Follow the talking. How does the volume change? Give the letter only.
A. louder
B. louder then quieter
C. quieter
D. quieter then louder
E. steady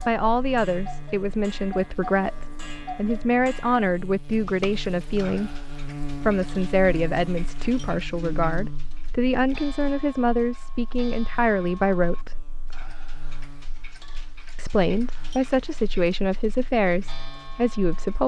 E.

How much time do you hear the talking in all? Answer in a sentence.
You can hear the talking for 16 seconds altogether.